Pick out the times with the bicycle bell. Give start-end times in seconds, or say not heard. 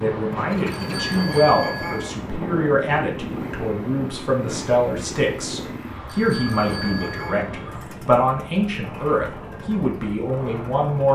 0.7-2.1, 6.0-7.5.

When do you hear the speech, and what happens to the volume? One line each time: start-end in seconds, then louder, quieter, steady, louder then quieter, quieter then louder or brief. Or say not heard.
0.0-11.0 steady.